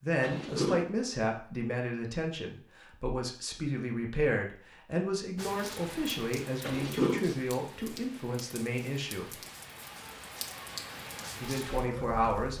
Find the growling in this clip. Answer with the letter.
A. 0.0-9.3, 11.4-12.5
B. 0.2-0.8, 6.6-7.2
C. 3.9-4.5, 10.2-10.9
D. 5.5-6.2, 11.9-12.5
B.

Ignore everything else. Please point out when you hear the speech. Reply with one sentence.
You can hear the speech from 0.0 to 9.3 s and from 11.4 to 12.5 s.